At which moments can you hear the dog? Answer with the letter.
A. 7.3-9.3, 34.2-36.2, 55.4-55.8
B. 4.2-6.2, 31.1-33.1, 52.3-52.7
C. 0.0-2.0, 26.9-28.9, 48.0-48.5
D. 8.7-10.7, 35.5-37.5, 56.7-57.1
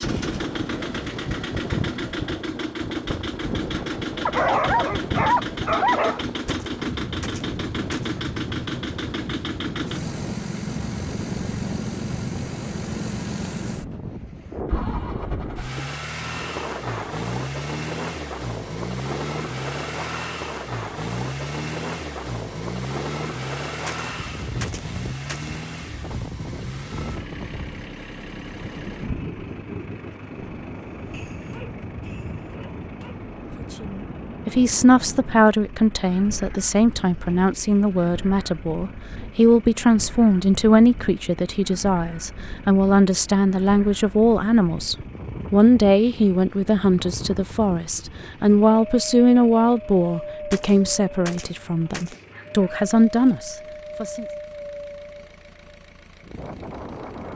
B.